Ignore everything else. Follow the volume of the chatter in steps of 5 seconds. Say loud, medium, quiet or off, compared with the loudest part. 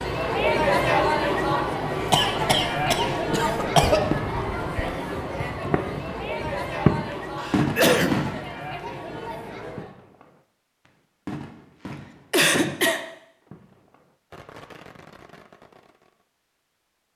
loud, medium, off, off.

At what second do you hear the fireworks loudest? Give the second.
7 s.